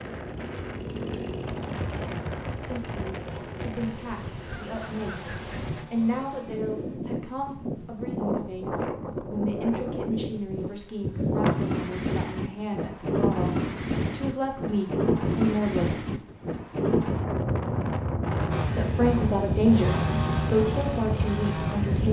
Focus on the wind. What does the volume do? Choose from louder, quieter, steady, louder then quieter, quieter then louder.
louder.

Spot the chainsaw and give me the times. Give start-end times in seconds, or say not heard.
0.0-7.0, 18.5-22.0.